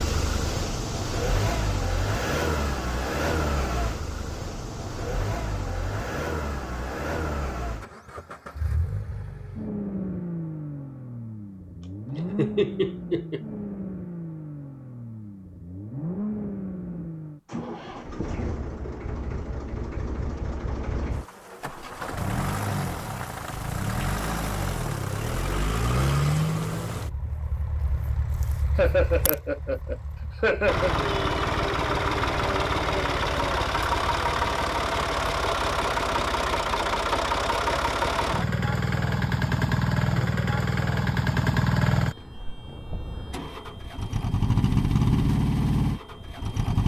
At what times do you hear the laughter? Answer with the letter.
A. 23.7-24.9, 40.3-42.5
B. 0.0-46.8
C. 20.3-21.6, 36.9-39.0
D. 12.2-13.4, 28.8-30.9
D.